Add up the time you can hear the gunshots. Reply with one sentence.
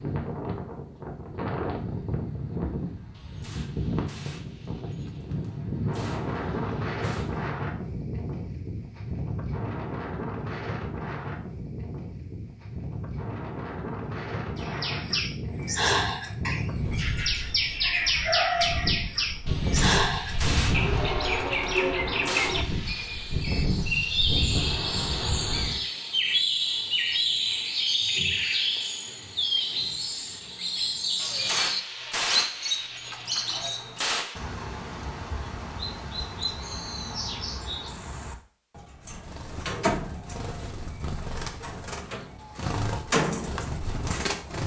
The gunshots can be heard for 11 seconds in total.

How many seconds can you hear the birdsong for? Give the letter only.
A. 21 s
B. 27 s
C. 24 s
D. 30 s
D.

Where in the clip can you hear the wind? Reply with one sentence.
The wind can be heard from 0.0 to 25.9 s.